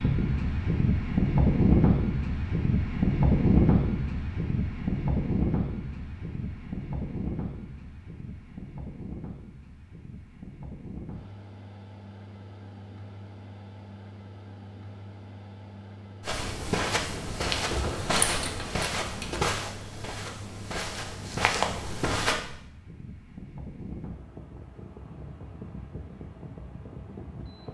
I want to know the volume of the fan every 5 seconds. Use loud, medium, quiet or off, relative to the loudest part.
loud, medium, quiet, quiet, quiet, quiet.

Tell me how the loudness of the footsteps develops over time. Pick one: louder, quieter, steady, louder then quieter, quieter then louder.
quieter then louder.